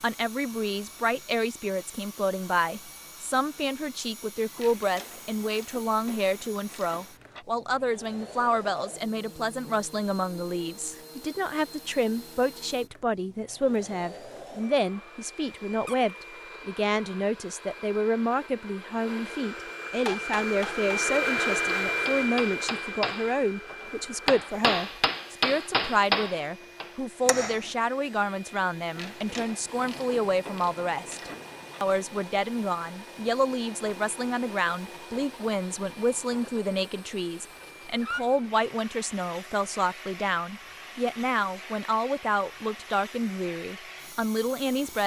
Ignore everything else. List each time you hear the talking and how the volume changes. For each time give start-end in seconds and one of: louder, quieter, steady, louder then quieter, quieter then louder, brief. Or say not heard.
0.0-45.0 steady.